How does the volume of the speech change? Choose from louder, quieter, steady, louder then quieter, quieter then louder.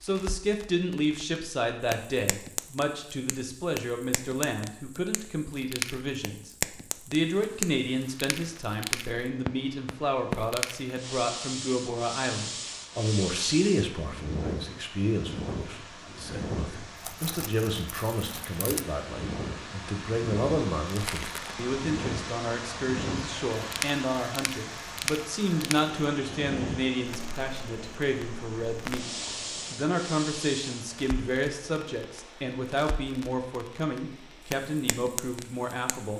steady.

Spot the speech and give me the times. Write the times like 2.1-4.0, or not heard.
0.0-29.1, 29.7-36.1.